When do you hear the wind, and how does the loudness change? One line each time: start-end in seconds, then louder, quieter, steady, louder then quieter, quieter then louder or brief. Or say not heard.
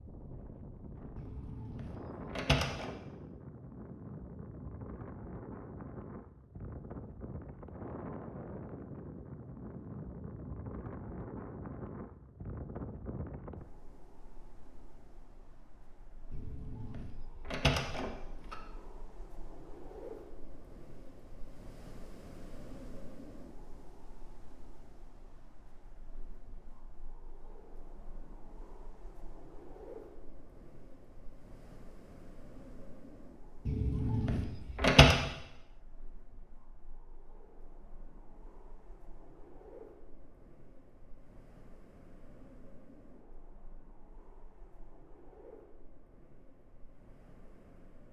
0.0-48.0 quieter.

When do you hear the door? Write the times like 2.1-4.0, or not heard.
1.1-3.0, 16.3-18.6, 33.6-35.1.